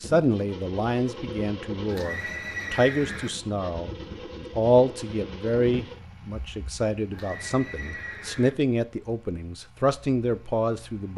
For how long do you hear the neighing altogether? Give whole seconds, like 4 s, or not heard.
3 s.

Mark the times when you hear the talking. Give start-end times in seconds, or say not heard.
0.0-11.1.